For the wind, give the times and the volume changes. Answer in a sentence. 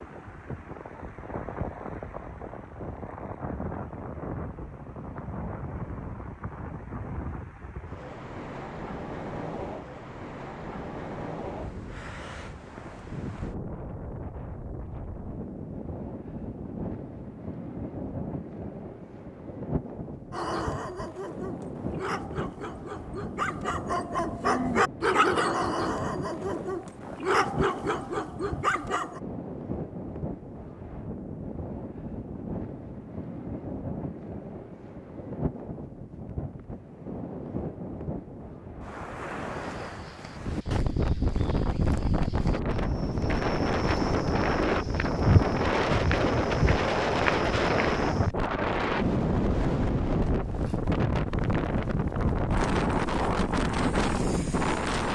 You can hear the wind from 0.0 to 55.1 s, getting louder.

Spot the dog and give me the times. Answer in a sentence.
You can hear the dog from 20.3 to 29.2 s.